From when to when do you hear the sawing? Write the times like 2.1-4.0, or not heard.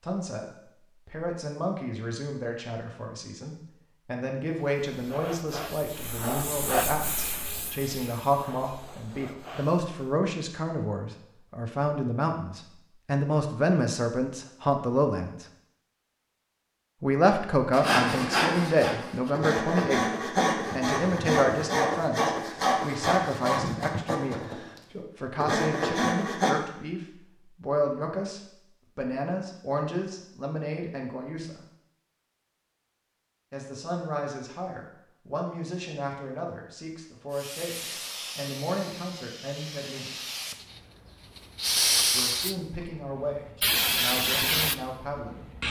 17.7-26.6.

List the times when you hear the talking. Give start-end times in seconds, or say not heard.
0.0-15.4, 17.0-31.6, 33.5-40.1, 42.1-45.5.